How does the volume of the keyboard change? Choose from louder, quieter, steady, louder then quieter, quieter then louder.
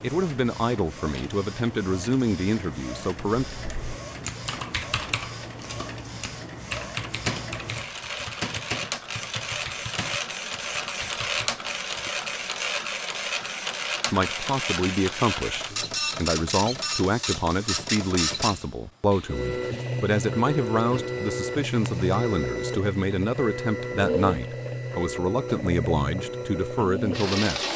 quieter.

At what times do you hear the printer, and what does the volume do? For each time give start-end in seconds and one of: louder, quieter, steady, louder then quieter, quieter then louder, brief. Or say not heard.
0.0-27.7 louder.